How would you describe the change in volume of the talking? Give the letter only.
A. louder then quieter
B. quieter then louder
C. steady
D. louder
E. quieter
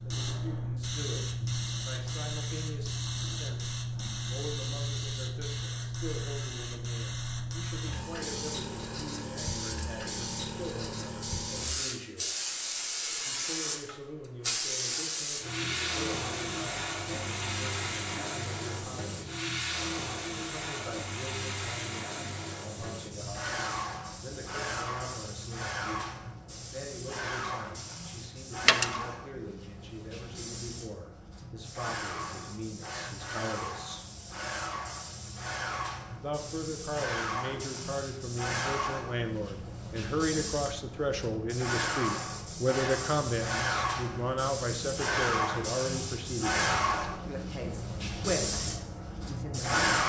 D.